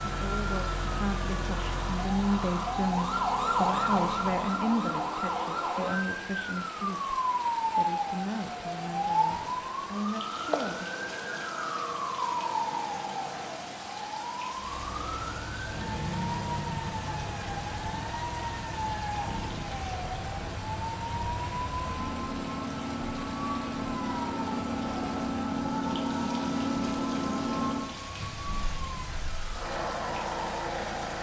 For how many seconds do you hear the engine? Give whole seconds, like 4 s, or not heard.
21 s.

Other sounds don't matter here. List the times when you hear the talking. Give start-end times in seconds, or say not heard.
0.1-10.9.